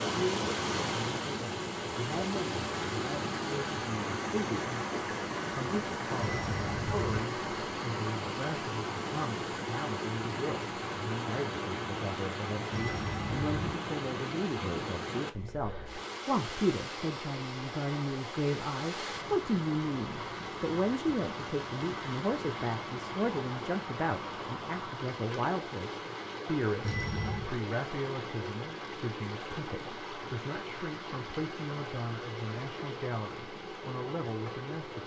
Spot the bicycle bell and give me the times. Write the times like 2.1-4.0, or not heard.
6.2-7.2, 12.7-13.8, 26.8-27.5.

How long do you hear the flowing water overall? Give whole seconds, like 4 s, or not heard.
35 s.